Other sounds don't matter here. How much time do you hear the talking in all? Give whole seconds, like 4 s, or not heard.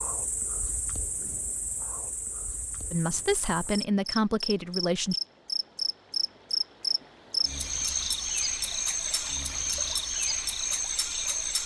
2 s.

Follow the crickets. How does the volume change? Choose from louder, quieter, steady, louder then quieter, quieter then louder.
louder.